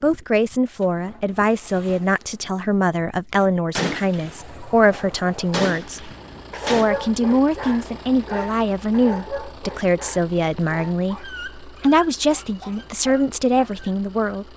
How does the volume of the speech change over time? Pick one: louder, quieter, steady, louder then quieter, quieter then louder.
steady.